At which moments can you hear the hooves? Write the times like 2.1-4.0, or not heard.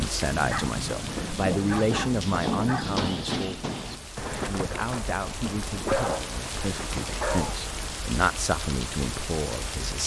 0.9-8.0.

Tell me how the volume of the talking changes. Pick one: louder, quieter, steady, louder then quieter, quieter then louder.
quieter then louder.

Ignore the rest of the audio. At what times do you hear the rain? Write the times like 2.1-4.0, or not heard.
0.0-10.0.